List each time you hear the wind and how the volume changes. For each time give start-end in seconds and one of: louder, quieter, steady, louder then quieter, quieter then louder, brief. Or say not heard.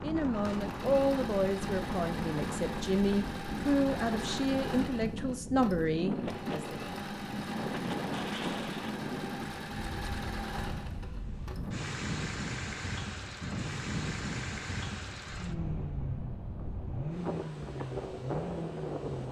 0.0-19.2 steady.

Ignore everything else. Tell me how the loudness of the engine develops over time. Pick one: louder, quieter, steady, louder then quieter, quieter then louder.
steady.